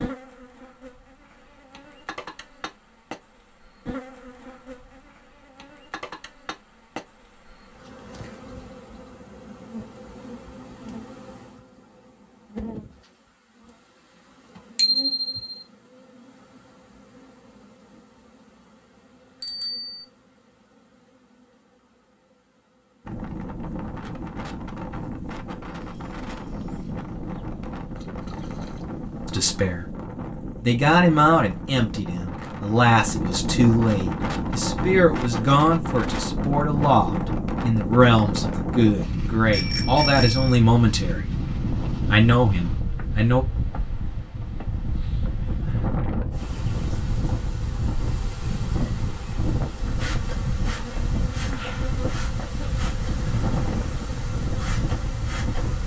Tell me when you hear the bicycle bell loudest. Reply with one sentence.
The loudest moment of the bicycle bell is at 15 seconds.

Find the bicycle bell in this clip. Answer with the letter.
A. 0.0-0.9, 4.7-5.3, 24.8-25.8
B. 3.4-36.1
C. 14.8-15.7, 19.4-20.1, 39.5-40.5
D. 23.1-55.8
C.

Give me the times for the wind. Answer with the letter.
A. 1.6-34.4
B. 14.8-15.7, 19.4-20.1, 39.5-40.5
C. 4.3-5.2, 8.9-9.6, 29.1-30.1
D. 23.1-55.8
D.